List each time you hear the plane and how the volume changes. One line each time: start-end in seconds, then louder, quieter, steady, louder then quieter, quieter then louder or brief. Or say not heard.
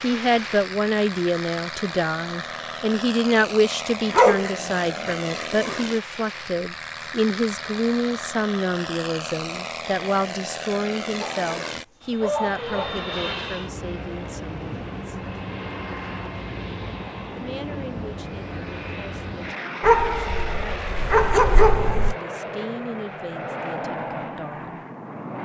0.0-25.4 steady.